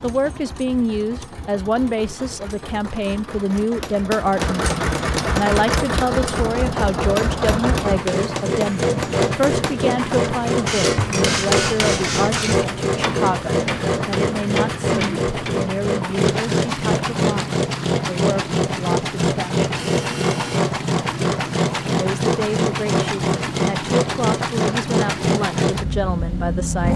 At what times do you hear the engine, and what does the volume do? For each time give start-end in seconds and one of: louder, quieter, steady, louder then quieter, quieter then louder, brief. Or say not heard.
0.0-26.9 louder.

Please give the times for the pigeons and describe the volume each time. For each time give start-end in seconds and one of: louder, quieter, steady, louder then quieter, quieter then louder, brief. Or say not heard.
not heard.